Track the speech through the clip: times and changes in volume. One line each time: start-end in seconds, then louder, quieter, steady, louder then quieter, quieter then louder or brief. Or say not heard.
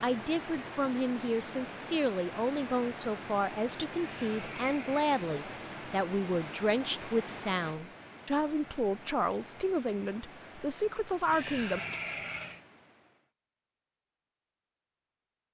0.0-11.8 steady.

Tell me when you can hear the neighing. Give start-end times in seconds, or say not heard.
3.9-5.1, 11.2-12.6.